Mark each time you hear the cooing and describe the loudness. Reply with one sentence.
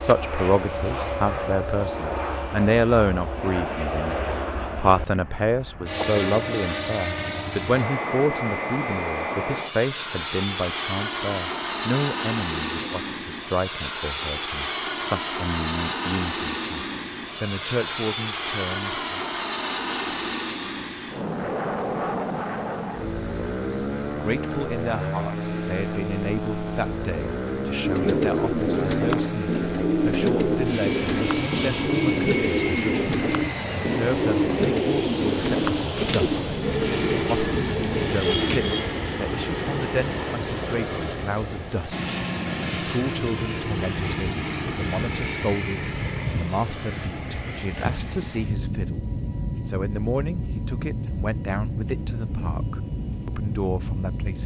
The cooing can be heard from 27.8 to 38.9 s, at a steady volume.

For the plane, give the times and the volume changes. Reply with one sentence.
You can hear the plane from 0.0 to 54.4 s, at a steady volume.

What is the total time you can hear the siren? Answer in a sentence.
The siren can't be heard in this clip.